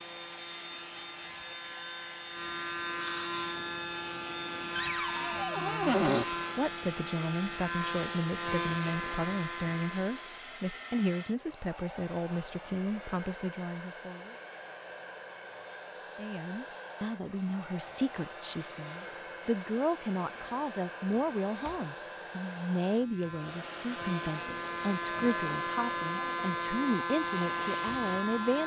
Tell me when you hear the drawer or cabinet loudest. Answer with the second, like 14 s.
6 s.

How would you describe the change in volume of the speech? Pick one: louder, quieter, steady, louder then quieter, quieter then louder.
steady.